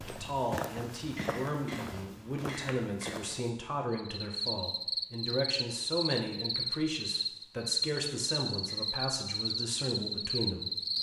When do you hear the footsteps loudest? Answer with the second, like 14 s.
1 s.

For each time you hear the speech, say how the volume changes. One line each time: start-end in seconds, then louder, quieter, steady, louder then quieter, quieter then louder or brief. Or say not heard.
0.0-10.9 steady.